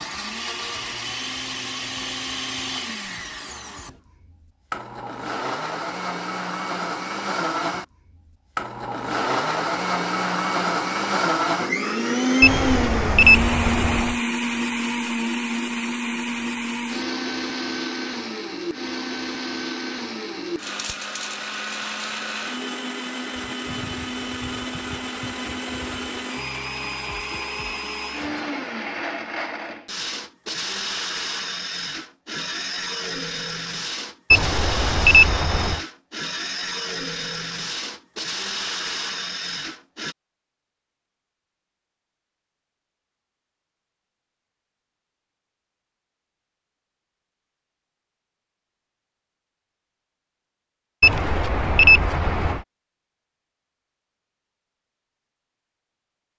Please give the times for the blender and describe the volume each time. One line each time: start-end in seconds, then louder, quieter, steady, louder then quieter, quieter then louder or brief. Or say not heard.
0.0-40.1 louder then quieter.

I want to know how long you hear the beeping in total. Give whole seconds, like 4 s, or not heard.
5 s.